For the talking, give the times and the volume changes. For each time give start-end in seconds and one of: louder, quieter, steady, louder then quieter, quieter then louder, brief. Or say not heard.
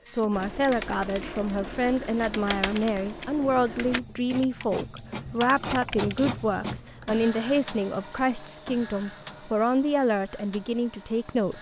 0.1-11.5 steady.